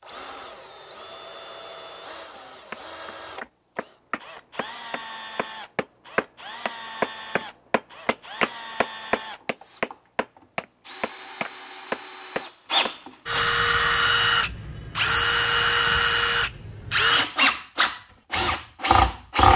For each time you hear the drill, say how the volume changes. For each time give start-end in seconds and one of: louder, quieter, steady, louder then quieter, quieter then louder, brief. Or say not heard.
0.0-19.5 louder.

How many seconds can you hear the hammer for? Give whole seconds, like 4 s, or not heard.
11 s.